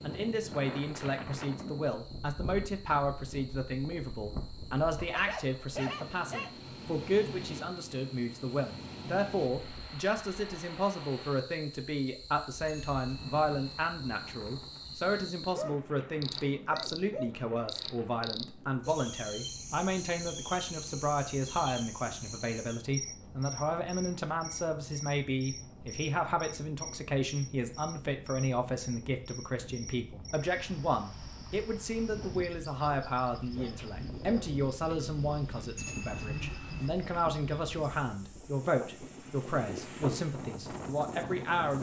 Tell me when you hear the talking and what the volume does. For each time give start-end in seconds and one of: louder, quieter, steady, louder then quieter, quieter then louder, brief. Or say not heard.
0.0-41.7 steady.